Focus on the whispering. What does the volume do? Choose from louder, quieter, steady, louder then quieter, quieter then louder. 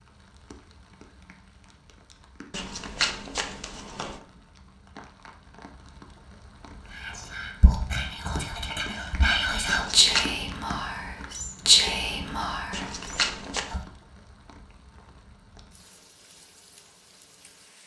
louder then quieter.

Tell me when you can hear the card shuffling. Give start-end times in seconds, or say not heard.
2.5-4.2, 9.7-10.3, 12.7-13.8.